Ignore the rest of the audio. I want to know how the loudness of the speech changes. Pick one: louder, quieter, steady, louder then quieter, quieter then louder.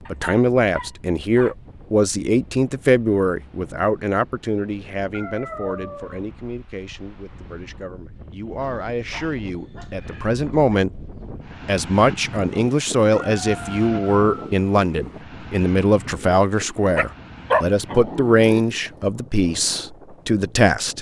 quieter then louder.